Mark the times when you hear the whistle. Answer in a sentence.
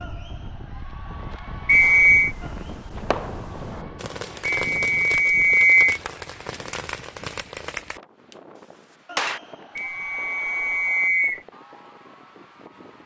You can hear the whistle from 1.6 to 2.4 s, from 4.7 to 6.0 s and from 9.8 to 11.4 s.